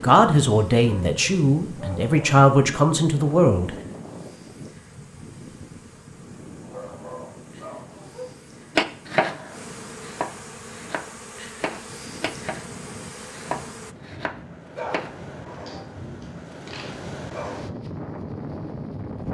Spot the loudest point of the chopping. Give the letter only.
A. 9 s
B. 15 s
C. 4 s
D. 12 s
A.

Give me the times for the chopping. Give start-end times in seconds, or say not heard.
8.8-15.1.